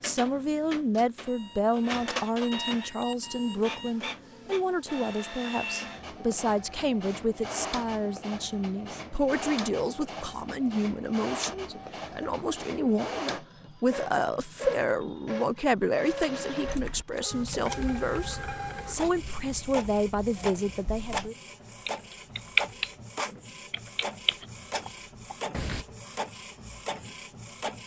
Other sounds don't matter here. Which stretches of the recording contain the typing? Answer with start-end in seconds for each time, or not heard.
16.6-22.9, 23.7-25.9.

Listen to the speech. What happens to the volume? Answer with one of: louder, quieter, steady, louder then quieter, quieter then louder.
steady.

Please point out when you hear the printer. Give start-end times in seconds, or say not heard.
0.0-27.8.